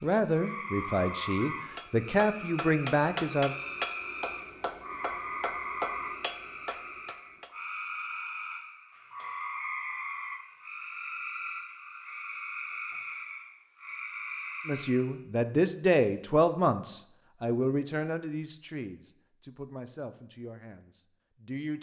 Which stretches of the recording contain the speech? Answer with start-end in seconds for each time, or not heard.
0.0-3.5, 14.7-21.7.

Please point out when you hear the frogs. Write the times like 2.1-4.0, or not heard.
0.0-15.2.